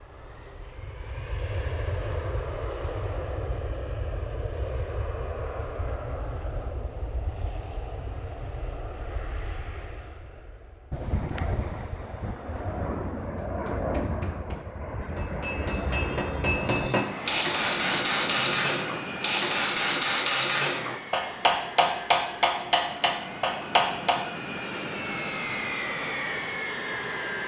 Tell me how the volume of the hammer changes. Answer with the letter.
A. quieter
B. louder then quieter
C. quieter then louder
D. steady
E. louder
E.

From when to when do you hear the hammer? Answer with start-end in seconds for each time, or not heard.
13.3-24.2.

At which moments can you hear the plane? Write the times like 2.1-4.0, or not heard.
0.0-27.4.